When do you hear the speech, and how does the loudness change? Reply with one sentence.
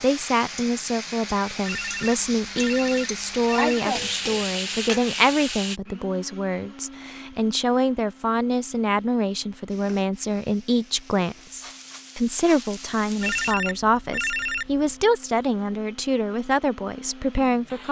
The speech can be heard from 0.0 to 17.8 s, at a steady volume.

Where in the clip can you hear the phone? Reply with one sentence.
The phone can be heard from 1.6 to 3.8 s and from 13.2 to 14.9 s.